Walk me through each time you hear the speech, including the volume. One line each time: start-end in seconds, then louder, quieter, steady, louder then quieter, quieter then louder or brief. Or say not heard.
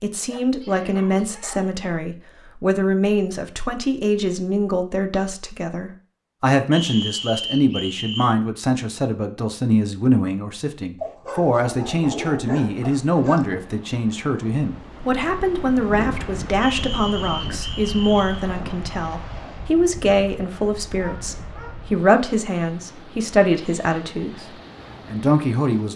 0.0-25.9 steady.